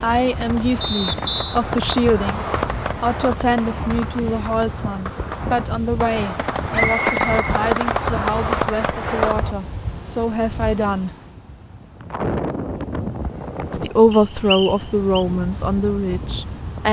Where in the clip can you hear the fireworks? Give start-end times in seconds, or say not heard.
0.1-9.6.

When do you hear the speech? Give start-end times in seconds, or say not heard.
0.0-11.1, 13.8-16.8.